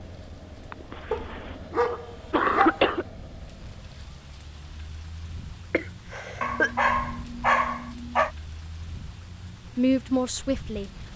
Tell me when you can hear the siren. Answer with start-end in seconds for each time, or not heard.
not heard.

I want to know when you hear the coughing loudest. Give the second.
3 s.